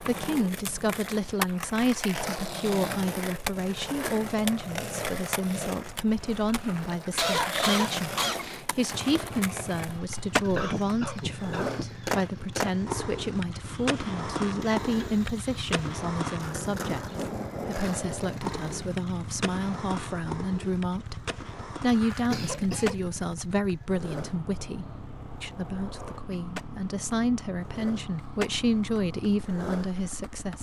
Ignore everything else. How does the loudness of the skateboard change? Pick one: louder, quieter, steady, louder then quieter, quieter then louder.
quieter.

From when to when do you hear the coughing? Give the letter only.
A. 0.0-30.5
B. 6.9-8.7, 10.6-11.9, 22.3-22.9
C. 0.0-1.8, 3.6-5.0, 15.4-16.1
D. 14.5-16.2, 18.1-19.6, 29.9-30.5
B.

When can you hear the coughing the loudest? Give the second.
7 s.